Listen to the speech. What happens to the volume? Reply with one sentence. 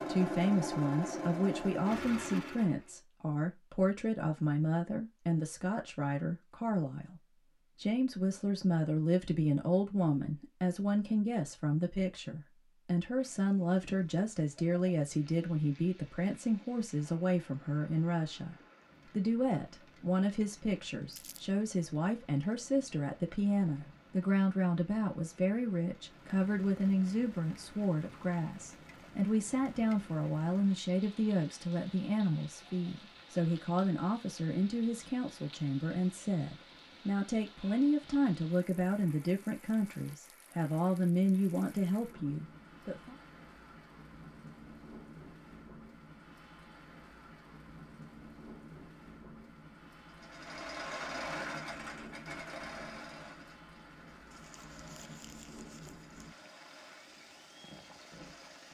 The loudness of the speech stays about the same.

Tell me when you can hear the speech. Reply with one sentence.
You can hear the speech from 0.1 to 43.1 s.